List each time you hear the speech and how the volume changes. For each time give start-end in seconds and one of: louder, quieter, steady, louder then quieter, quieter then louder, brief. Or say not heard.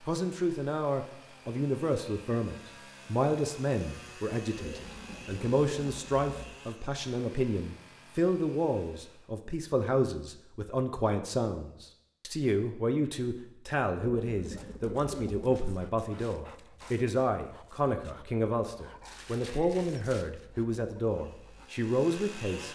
0.1-22.6 steady.